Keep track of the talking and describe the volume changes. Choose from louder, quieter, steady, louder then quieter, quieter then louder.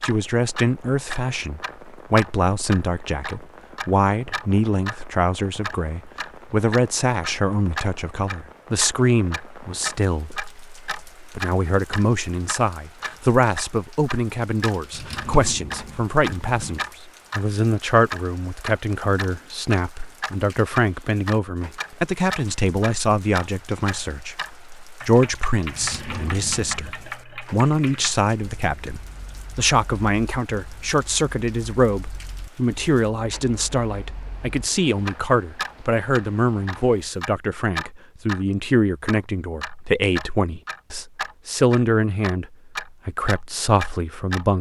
steady.